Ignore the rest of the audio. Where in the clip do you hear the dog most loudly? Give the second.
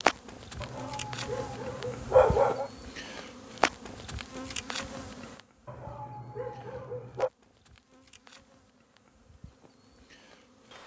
2 s.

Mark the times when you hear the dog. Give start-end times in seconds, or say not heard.
0.6-2.7, 5.7-7.3.